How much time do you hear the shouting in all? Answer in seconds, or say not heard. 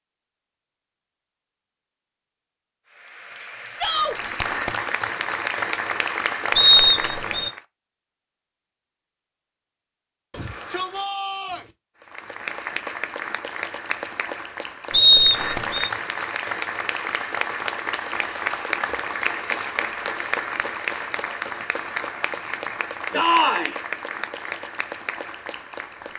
2 s.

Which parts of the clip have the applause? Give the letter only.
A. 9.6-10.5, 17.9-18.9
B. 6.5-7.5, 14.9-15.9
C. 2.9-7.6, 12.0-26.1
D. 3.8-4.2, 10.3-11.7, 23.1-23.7
C.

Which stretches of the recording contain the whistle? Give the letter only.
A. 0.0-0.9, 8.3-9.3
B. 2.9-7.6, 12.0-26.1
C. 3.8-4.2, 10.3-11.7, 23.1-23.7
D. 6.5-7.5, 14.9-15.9
D.